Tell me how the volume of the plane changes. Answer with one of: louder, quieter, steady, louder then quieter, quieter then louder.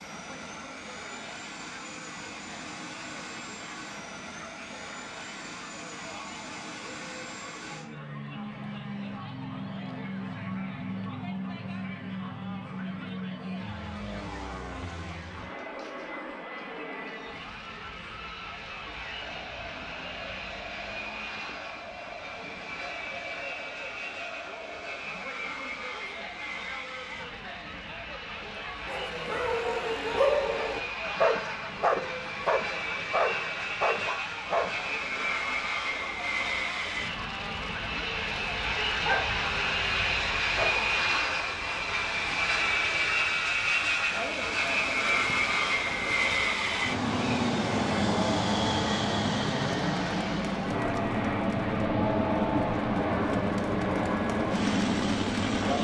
louder.